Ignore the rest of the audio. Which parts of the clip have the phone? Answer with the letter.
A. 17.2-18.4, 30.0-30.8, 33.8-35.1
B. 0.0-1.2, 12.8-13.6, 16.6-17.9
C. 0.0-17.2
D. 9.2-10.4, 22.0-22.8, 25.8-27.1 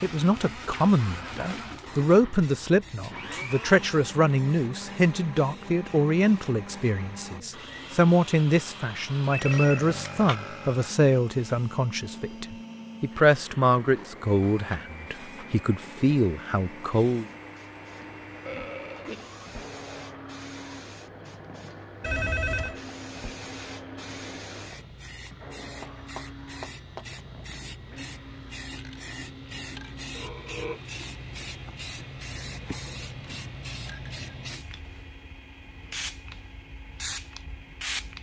D.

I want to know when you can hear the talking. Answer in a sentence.
The talking can be heard from 0.0 to 17.2 s.